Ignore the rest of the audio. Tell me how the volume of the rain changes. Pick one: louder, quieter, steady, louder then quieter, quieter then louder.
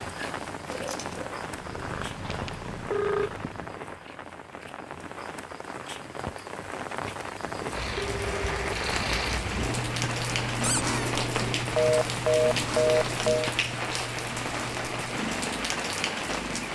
louder.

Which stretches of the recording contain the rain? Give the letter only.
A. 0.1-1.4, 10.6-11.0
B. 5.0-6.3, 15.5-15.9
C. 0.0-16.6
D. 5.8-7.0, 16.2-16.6
C.